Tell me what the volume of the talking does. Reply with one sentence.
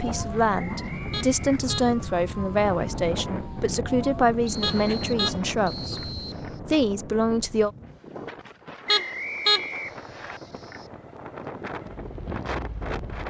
The volume of the talking stays about the same.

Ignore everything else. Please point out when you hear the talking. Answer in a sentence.
You can hear the talking from 0.0 to 7.7 s.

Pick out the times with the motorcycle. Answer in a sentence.
You can hear the motorcycle from 9.8 to 13.2 s.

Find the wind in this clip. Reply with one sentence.
The wind can be heard from 0.0 to 13.2 s.